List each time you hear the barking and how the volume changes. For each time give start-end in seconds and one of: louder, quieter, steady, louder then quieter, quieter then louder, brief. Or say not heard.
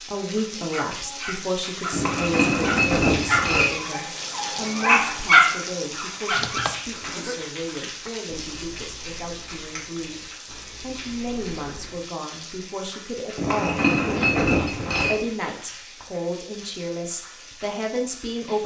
0.3-6.7 louder.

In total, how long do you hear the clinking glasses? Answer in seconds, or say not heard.
4 s.